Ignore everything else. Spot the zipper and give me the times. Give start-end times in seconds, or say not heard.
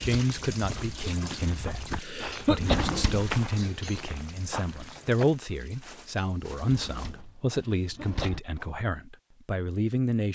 not heard.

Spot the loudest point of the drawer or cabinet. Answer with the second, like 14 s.
3 s.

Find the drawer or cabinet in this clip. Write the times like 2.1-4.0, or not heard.
2.5-3.3, 6.6-8.4.